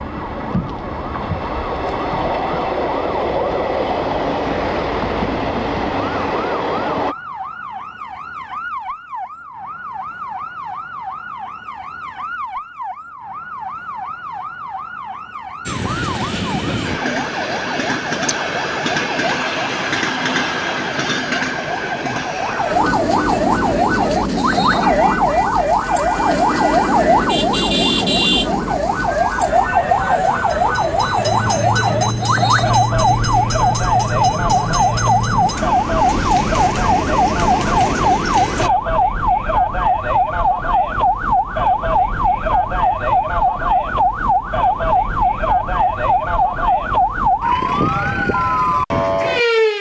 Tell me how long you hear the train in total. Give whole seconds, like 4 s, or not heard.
30 s.